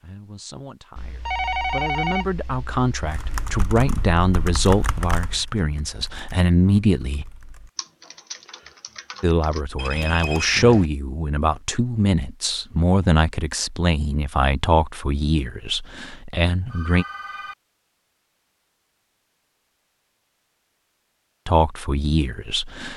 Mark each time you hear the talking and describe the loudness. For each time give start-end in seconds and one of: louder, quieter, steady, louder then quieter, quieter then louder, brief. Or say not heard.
0.0-7.2 louder
9.2-17.1 quieter
21.4-22.9 brief.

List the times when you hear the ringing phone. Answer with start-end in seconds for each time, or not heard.
0.9-3.2, 9.8-10.9, 16.6-17.6.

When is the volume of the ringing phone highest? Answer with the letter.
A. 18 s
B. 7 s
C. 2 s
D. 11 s
C.